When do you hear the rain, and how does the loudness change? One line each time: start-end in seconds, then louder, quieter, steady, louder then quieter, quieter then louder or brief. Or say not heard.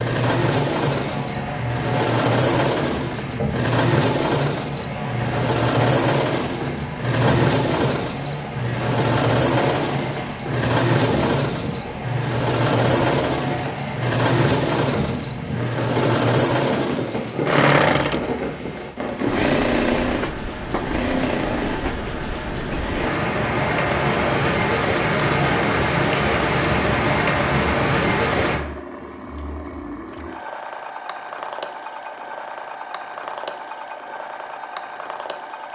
0.0-28.6 louder.